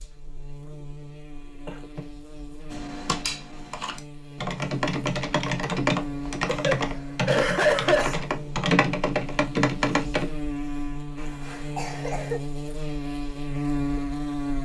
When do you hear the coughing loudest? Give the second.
8 s.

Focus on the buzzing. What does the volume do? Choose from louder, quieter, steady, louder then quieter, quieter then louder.
louder.